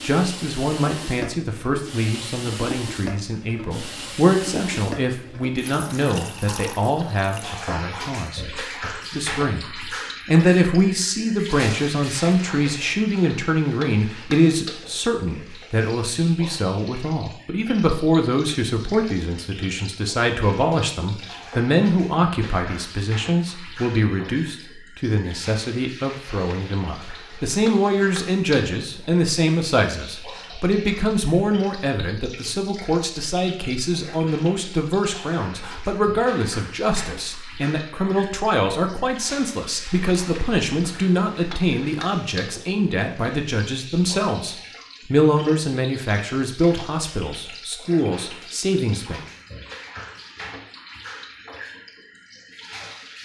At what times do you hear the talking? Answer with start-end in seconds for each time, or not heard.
0.0-49.2.